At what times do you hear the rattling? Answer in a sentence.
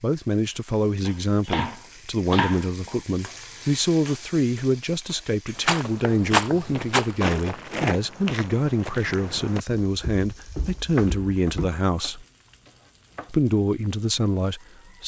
The rattling can be heard from 5.6 to 7.2 s.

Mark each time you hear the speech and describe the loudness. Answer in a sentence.
You can hear the speech from 0.0 to 12.2 s, at a steady volume; and briefly from 13.3 to 15.0 s.